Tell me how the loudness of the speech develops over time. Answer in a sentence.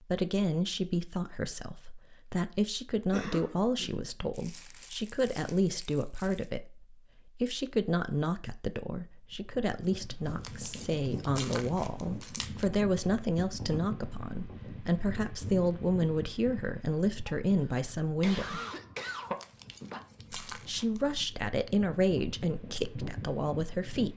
The volume of the speech stays about the same.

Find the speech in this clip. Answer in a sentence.
You can hear the speech from 0.0 to 18.6 s and from 20.5 to 24.1 s.